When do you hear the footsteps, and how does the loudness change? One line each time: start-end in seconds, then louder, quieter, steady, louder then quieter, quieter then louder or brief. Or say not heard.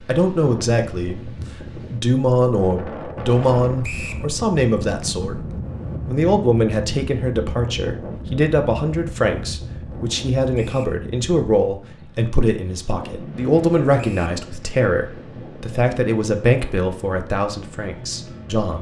not heard.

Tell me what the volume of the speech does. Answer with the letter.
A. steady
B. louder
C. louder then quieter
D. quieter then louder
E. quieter
A.